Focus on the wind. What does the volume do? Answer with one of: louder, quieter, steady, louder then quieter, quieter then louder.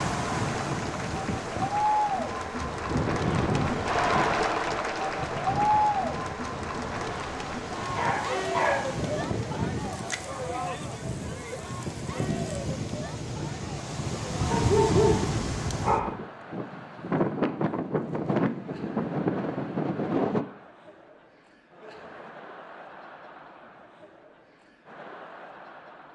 quieter then louder.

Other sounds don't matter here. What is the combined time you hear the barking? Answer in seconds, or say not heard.
3 s.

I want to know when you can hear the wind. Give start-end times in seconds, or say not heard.
0.0-20.4.